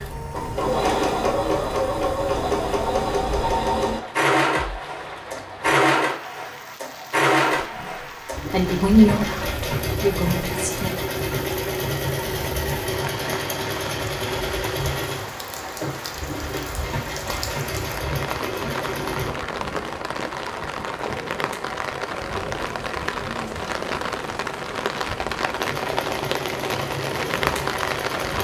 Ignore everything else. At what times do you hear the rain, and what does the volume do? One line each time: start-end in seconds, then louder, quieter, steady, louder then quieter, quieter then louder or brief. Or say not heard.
0.0-28.3 louder.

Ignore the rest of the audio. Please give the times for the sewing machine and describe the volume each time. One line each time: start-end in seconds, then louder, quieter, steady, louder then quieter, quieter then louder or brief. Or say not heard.
0.0-19.4 quieter
25.5-28.3 brief.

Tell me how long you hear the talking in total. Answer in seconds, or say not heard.
3 s.